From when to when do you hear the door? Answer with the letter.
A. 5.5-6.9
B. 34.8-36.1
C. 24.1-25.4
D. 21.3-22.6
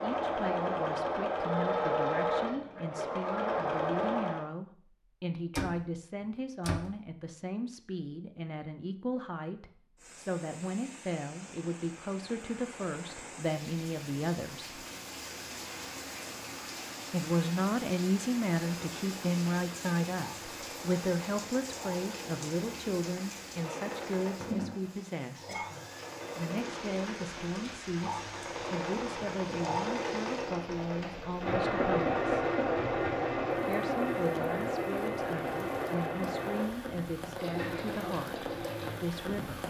A.